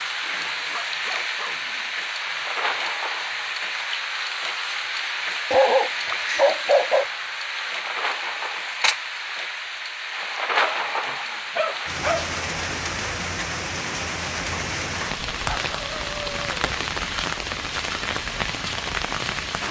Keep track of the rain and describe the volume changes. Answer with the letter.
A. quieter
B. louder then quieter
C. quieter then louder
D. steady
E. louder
D.